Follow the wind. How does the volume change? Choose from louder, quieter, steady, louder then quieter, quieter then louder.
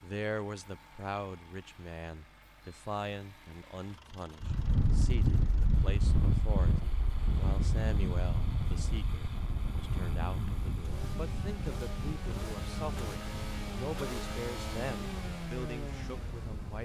quieter.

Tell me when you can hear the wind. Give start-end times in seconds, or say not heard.
4.4-16.8.